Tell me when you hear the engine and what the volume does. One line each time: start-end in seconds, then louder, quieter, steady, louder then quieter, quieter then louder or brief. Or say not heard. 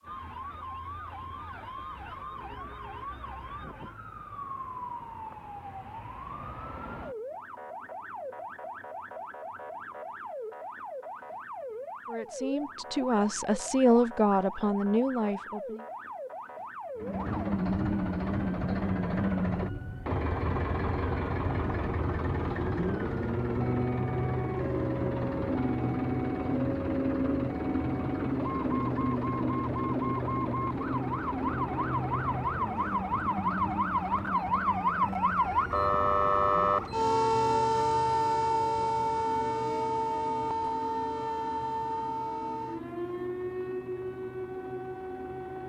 16.9-45.6 quieter.